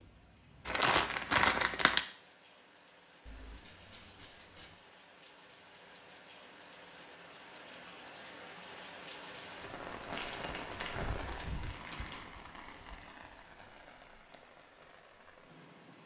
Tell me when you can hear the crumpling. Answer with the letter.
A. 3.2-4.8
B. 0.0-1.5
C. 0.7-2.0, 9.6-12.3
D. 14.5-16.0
C.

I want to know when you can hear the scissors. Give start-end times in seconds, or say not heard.
3.2-4.8.